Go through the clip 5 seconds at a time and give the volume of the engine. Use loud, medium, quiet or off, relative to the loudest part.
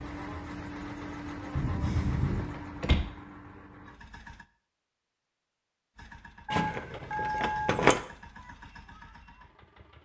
loud, medium.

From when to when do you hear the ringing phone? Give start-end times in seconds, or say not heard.
1.6-2.5, 6.5-7.8.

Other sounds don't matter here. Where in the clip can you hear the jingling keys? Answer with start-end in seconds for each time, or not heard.
2.2-3.0, 6.5-8.0.